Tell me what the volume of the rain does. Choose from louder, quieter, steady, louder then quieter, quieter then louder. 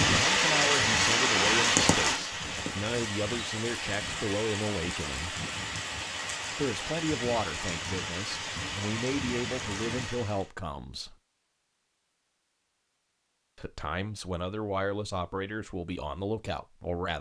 quieter.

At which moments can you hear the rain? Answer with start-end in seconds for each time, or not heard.
0.0-10.5.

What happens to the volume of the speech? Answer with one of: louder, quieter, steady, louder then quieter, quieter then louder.
steady.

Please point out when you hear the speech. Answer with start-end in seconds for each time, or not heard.
0.1-5.4, 6.5-11.2, 13.6-17.1.